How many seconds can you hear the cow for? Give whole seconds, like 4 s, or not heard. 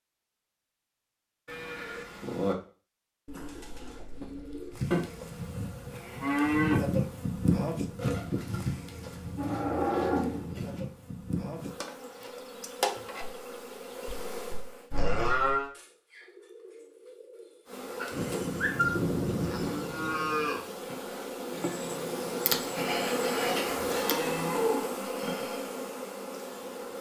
10 s.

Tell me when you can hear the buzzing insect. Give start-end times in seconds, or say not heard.
4.7-14.9, 17.6-26.9.